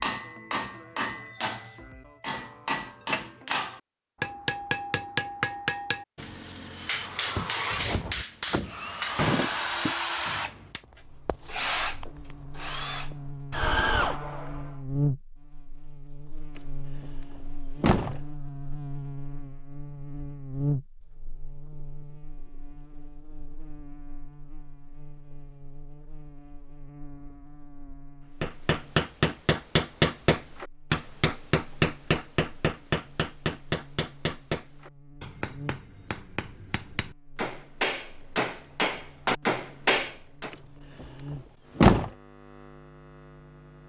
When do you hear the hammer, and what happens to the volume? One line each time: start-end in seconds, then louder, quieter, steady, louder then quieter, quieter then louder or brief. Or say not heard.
0.0-10.8 steady
28.4-40.5 quieter then louder.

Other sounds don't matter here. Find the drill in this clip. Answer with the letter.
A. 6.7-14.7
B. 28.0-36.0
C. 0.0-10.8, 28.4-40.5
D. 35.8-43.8
A.